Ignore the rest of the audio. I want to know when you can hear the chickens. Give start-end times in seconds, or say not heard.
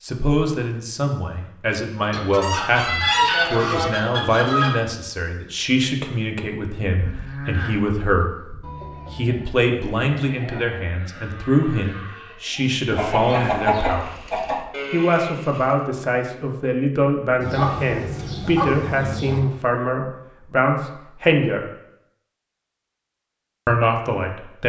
2.1-4.8, 12.9-14.7, 17.4-19.4.